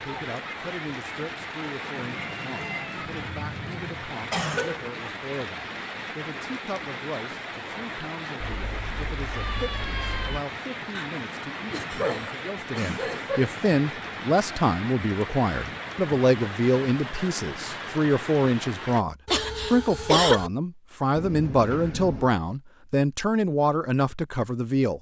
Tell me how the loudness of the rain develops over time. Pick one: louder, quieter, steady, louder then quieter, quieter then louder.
steady.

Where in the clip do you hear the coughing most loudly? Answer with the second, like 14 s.
20 s.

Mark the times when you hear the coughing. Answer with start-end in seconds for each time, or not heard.
4.3-5.0, 10.9-13.5, 19.2-20.5.